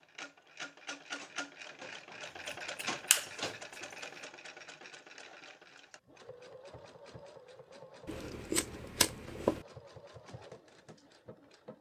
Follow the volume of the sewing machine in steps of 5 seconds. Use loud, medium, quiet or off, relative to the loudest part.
loud, medium, medium.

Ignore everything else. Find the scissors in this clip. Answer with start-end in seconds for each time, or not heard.
2.5-3.3, 8.1-9.7.